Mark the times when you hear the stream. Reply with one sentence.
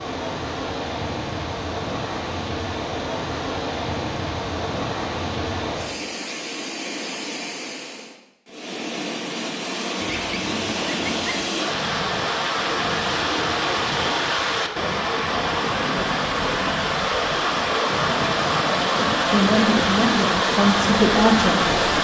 You can hear the stream from 0.0 to 21.9 s.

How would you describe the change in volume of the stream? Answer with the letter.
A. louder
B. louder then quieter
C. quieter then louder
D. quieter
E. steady
A.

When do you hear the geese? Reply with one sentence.
You can hear the geese from 10.0 to 11.6 s.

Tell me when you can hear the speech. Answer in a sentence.
You can hear the speech from 18.7 to 21.8 s.